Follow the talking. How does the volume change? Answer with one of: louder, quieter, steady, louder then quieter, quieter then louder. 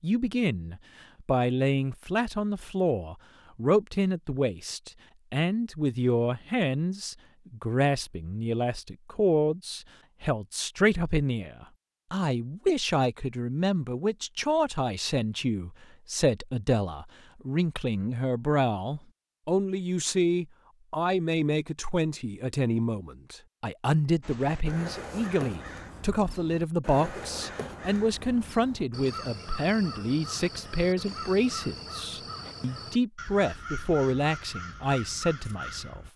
steady.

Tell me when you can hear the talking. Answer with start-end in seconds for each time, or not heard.
0.0-36.0.